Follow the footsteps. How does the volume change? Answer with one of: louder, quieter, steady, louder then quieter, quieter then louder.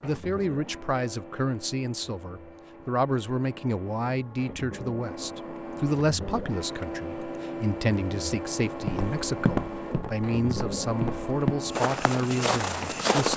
quieter then louder.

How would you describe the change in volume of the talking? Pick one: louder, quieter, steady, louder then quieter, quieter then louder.
steady.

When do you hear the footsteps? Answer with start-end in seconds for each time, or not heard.
8.8-13.3.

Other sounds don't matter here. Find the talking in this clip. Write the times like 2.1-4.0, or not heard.
0.0-13.3.